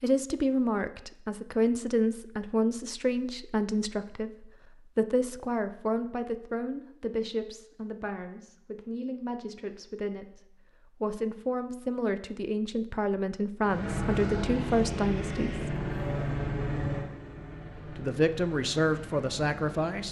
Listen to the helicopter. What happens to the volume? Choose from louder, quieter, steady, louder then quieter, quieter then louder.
quieter.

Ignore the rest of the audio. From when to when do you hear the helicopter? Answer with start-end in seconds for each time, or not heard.
13.6-20.0.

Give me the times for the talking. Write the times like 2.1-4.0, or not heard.
0.0-15.8, 17.9-20.0.